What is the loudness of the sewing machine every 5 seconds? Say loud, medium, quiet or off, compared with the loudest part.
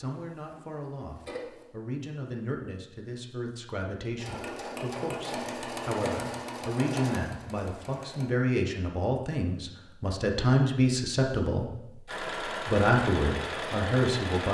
medium, loud, loud.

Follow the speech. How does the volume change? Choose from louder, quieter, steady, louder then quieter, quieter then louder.
louder.